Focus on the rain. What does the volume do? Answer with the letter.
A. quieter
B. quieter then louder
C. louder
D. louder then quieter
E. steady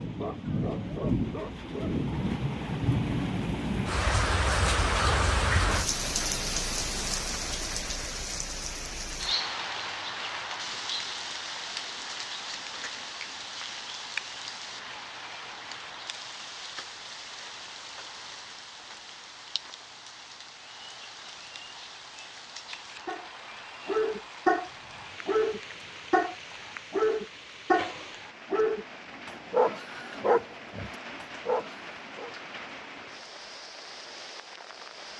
A.